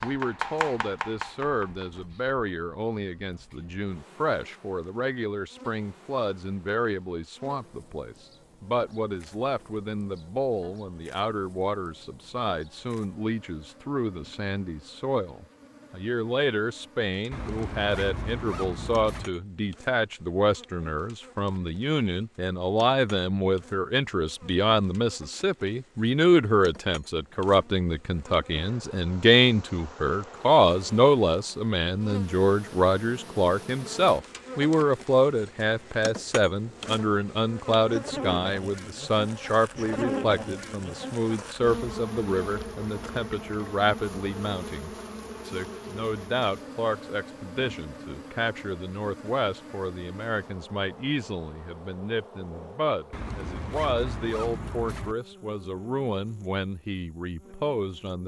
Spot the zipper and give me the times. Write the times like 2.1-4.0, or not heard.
17.3-19.3, 53.1-55.1.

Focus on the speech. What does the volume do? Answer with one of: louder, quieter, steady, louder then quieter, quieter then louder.
louder then quieter.